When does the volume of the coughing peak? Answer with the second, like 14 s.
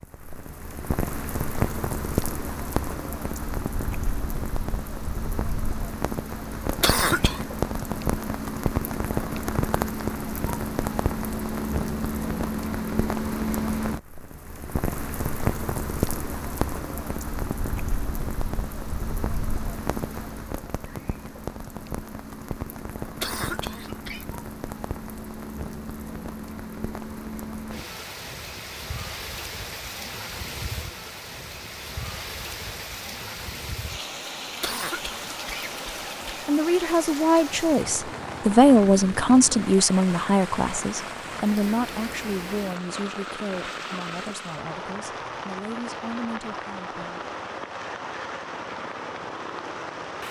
7 s.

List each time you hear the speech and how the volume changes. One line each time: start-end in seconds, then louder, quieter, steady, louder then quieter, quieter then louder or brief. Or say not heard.
36.5-47.2 quieter.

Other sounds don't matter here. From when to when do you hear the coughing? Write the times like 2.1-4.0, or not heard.
6.8-7.4, 23.2-24.2, 34.6-36.5.